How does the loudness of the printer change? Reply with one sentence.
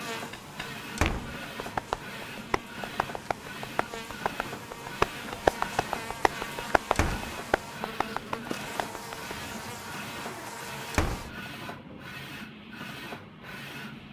The volume of the printer stays about the same.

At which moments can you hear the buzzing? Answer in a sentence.
You can hear the buzzing from 0.0 to 11.3 s.